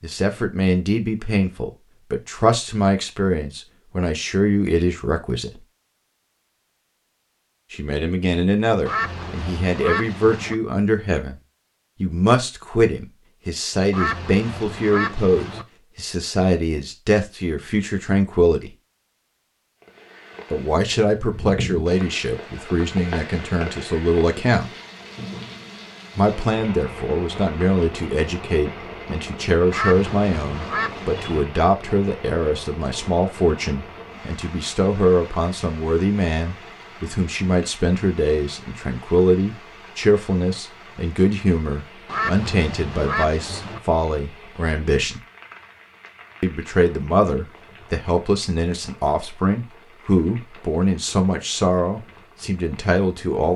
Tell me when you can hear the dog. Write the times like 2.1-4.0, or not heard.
not heard.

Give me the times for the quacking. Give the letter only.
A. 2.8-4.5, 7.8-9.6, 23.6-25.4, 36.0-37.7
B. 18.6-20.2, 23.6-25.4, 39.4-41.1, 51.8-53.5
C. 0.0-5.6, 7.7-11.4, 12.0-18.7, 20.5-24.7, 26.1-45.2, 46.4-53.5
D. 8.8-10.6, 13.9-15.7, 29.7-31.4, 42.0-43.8
D.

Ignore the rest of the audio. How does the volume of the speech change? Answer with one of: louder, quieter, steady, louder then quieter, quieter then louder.
steady.